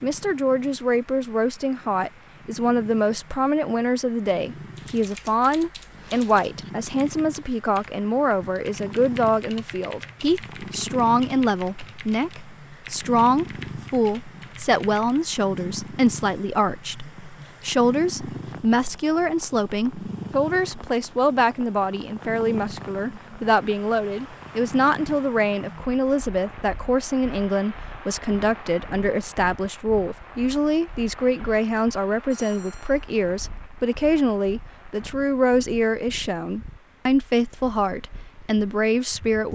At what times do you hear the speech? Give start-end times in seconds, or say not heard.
0.0-39.5.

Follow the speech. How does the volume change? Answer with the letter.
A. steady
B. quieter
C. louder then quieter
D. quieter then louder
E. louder
A.